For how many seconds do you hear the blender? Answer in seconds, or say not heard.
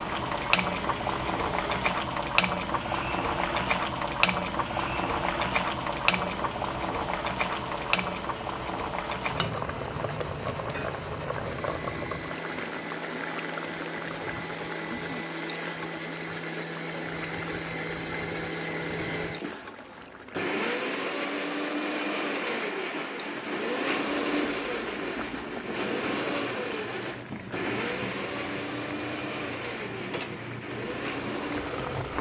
32 s.